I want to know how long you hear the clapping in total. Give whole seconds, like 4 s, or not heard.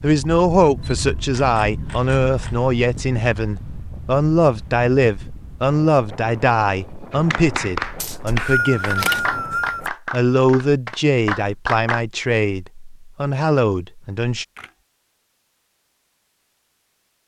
5 s.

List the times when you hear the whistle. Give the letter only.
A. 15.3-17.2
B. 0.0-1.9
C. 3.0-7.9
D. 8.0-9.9
D.